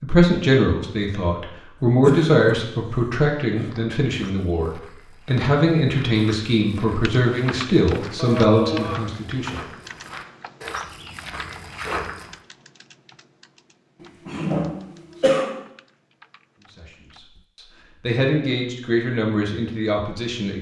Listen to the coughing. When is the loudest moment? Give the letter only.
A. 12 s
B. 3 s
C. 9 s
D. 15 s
D.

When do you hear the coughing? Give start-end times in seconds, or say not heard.
2.0-3.7, 8.2-9.0, 14.2-15.6.